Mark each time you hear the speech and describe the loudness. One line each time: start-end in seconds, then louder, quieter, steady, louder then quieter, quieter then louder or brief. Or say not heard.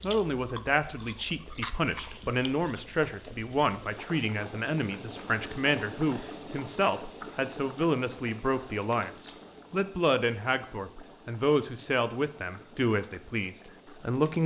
0.0-14.4 steady.